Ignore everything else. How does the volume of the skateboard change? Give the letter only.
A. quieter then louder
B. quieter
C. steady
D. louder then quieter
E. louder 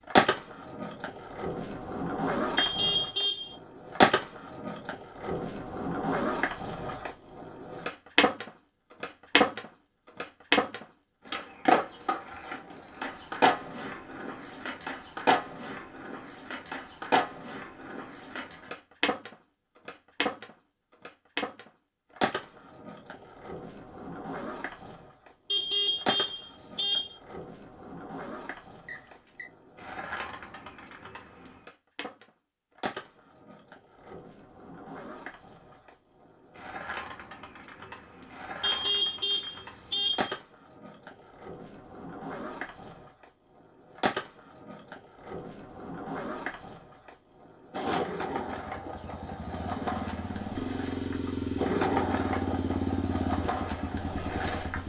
A.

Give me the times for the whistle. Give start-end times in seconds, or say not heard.
28.9-29.5.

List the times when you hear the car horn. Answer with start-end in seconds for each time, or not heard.
2.5-3.5, 25.5-27.1, 38.6-40.4.